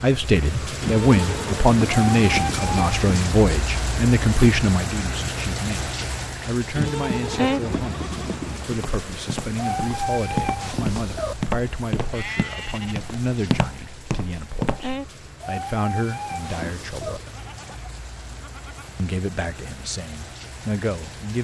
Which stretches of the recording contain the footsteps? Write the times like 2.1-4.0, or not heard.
8.7-14.9.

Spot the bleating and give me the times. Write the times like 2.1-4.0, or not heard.
0.8-2.8, 6.8-8.7, 12.1-13.0, 17.2-18.9.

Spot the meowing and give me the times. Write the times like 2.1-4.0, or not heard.
2.1-3.4, 9.6-11.3, 15.4-17.2.